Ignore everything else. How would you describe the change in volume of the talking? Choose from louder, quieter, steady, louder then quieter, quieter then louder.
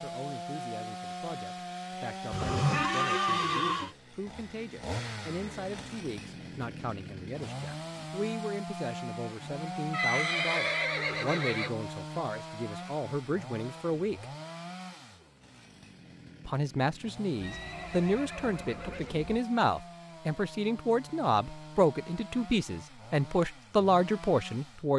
louder.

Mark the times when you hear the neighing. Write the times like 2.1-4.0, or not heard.
2.3-4.0, 9.9-11.8, 17.4-19.4.